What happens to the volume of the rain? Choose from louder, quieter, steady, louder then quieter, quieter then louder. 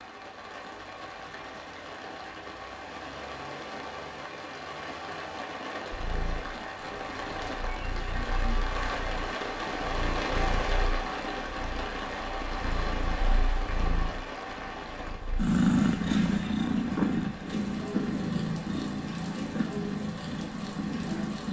louder then quieter.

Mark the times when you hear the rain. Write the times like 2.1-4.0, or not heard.
0.0-21.4.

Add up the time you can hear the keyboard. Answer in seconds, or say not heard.
not heard.